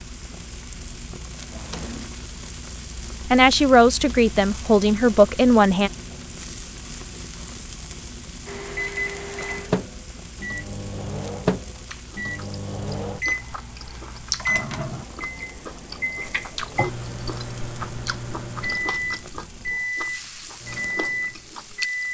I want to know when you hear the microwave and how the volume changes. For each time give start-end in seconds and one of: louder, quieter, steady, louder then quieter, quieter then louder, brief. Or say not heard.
8.4-22.0 steady.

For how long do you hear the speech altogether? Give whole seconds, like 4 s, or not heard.
3 s.